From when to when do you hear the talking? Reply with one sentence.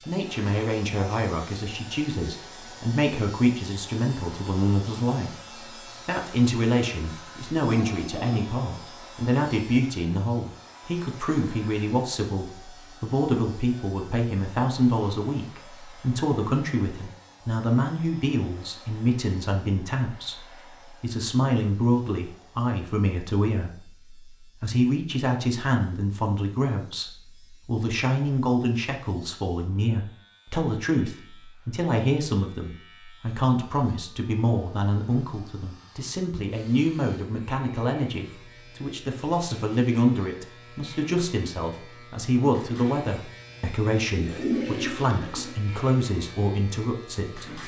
You can hear the talking from 0.1 to 5.3 s and from 6.0 to 47.6 s.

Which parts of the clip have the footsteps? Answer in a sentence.
The footsteps can't be heard in this clip.